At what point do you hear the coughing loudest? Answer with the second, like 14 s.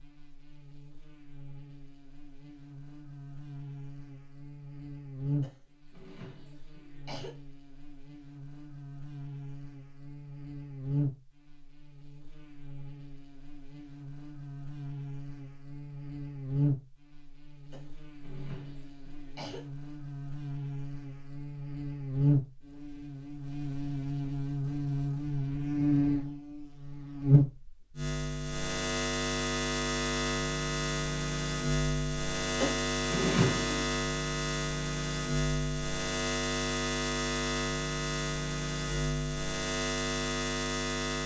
33 s.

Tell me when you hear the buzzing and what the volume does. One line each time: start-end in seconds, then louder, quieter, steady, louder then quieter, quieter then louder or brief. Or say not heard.
0.0-41.2 louder.